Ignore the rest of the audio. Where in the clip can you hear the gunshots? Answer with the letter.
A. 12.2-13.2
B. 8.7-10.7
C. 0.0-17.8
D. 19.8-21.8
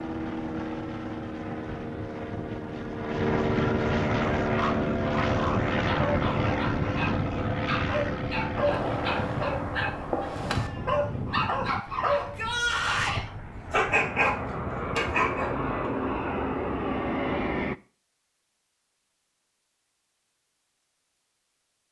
B.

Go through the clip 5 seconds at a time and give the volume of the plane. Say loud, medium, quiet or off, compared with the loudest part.
loud, loud, medium, loud, off.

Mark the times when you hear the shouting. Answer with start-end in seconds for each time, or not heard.
12.2-13.2.